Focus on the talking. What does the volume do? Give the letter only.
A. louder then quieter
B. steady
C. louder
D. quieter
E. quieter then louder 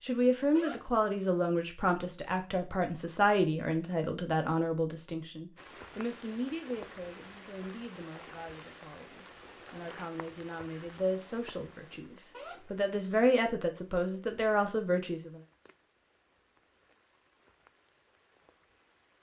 E.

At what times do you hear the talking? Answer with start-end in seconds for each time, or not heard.
0.0-15.3.